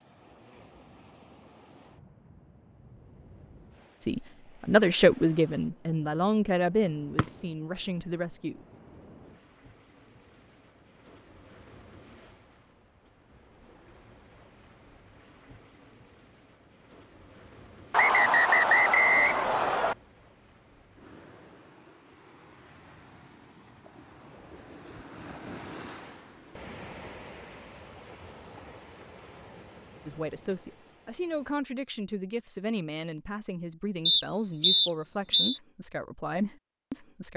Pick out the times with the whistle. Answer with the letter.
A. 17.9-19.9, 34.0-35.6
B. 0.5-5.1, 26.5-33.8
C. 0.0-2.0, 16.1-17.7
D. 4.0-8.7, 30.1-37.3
A.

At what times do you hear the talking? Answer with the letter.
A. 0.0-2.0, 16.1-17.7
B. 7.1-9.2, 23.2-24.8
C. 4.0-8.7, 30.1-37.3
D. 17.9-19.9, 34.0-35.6
C.